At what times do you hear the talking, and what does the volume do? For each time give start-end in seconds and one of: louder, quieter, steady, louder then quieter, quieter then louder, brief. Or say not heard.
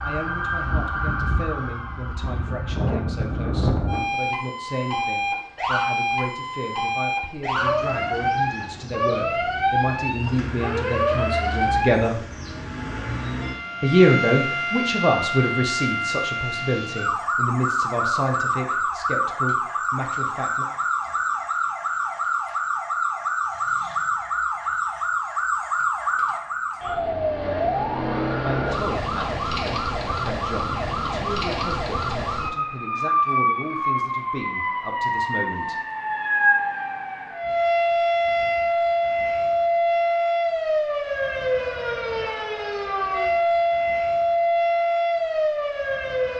0.0-12.2 louder
13.8-20.6 quieter
28.4-35.8 steady.